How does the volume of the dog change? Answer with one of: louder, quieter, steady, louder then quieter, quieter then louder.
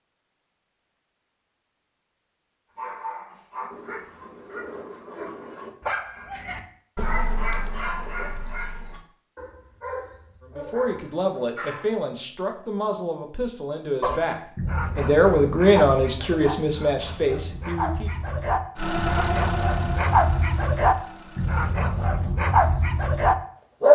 louder.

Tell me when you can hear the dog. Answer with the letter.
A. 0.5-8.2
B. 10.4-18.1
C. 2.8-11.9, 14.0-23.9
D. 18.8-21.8
C.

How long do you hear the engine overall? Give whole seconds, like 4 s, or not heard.
3 s.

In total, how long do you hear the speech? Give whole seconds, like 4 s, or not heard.
8 s.